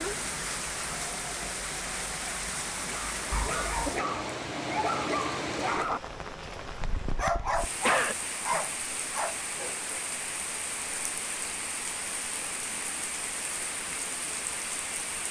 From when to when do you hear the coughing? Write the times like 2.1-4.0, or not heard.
7.0-8.2.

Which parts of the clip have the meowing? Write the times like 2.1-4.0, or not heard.
not heard.